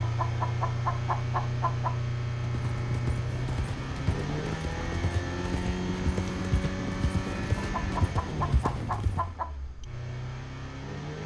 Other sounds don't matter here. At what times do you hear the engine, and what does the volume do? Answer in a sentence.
You can hear the engine from 0.0 to 11.2 s, getting quieter.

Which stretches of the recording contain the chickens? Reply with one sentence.
The chickens can be heard from 0.0 to 2.0 s and from 7.5 to 9.6 s.